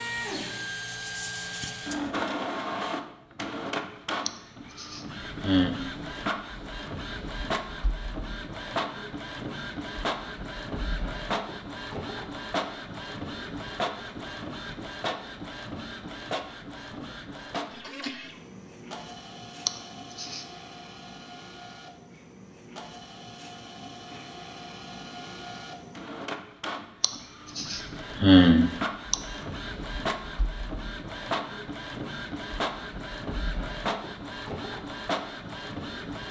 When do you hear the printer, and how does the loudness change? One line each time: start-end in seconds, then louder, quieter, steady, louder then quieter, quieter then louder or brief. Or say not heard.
0.0-36.2 quieter then louder.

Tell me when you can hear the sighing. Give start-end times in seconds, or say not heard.
4.2-5.8, 19.6-20.4, 27.0-29.1.